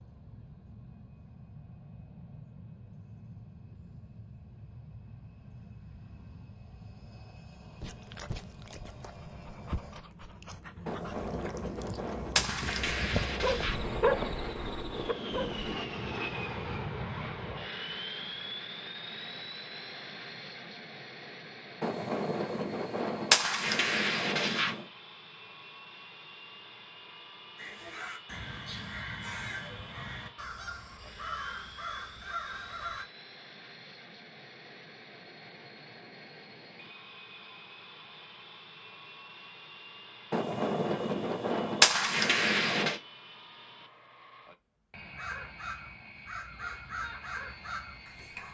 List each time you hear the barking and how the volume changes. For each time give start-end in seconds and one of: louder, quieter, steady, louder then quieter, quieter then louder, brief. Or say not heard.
7.8-15.8 louder.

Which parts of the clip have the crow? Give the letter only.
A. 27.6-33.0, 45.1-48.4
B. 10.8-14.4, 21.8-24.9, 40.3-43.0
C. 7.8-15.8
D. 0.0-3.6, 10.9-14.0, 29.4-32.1
A.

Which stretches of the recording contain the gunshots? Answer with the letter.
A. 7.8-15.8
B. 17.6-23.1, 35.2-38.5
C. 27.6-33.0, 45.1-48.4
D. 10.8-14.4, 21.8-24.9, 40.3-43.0
D.